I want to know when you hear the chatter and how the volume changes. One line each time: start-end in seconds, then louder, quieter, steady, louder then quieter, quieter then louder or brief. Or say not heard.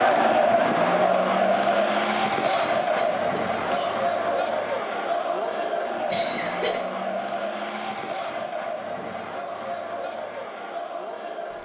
0.0-11.5 quieter.